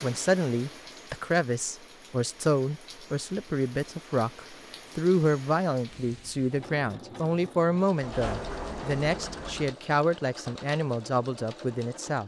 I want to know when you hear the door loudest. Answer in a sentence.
The volume of the door peaks at 8 seconds.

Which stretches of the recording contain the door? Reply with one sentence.
The door can be heard from 8.0 to 9.8 s.